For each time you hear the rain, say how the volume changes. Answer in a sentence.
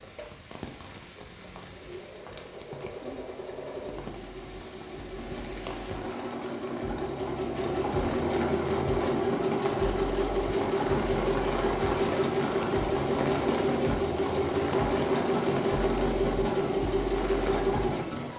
The rain can be heard from 0.0 to 18.3 s, getting louder.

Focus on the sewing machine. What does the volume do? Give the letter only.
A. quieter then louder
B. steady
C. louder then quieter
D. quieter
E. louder
E.